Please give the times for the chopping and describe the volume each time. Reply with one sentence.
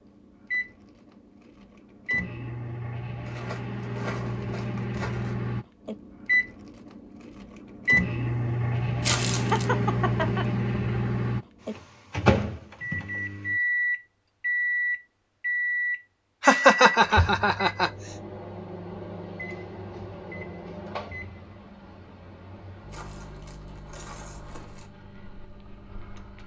You can't hear the chopping here.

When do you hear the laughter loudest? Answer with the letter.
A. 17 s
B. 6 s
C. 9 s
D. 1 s
A.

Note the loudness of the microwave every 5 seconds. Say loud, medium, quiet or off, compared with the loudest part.
medium, loud, loud, medium, quiet, quiet.